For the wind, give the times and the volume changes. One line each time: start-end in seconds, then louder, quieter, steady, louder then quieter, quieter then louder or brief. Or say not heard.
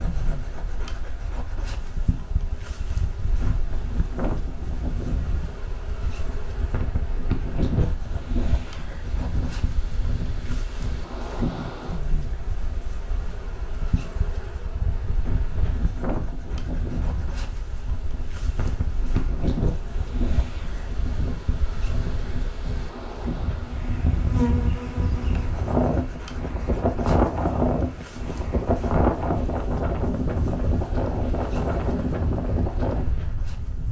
0.0-33.8 louder.